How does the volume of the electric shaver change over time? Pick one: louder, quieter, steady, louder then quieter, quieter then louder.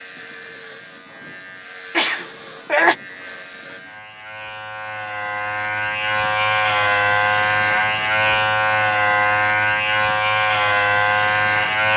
louder.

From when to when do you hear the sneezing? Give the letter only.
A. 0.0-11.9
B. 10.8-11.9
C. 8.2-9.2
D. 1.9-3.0
D.